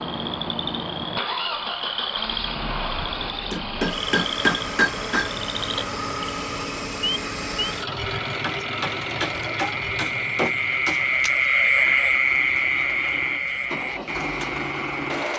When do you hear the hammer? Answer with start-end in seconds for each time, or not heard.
3.5-5.3, 8.4-11.1.